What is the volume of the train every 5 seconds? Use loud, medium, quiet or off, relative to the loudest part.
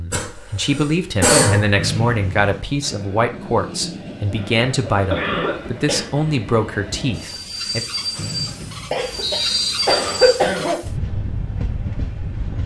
medium, loud, loud.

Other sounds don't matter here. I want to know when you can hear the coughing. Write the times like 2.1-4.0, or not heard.
0.1-1.8, 4.8-6.0, 8.9-10.8.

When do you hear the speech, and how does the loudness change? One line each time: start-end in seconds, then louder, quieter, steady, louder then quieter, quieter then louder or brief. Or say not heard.
0.0-7.8 steady.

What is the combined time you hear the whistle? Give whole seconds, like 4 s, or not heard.
3 s.